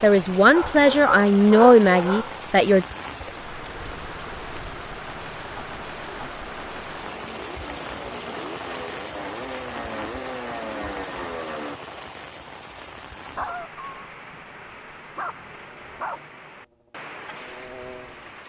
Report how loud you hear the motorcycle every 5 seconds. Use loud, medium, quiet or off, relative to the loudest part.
quiet, medium, loud, quiet.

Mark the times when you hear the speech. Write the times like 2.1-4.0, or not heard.
0.0-2.9.